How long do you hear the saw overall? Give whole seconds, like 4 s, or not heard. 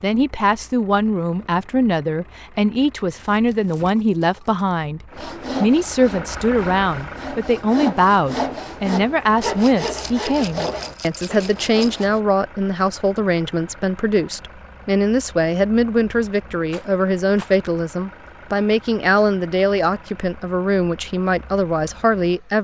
7 s.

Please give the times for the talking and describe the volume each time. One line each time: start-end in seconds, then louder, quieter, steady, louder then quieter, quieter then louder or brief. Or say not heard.
0.0-22.5 steady.